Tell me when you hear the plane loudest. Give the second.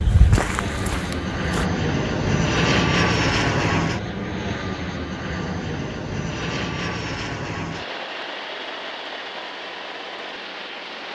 3 s.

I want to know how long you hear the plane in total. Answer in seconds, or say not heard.
11 s.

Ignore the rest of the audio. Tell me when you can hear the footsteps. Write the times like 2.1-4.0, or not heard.
0.0-1.6.